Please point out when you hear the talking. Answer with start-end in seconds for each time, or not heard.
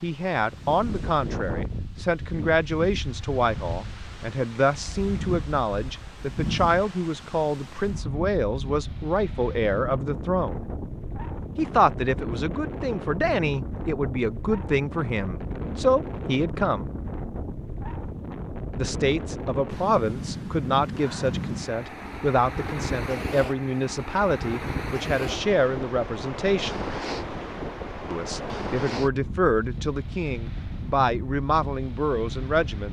0.0-10.7, 11.6-16.9, 18.8-26.8, 28.1-32.8.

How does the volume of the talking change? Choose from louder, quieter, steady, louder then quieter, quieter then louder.
steady.